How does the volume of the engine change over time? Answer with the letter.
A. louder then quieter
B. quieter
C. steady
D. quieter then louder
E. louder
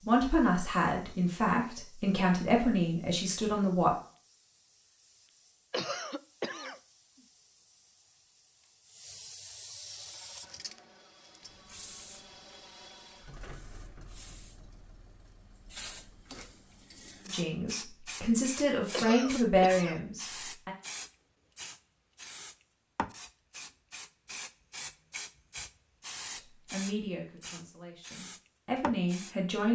A.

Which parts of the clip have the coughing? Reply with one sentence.
You can hear the coughing from 5.7 to 6.8 s and from 18.9 to 20.0 s.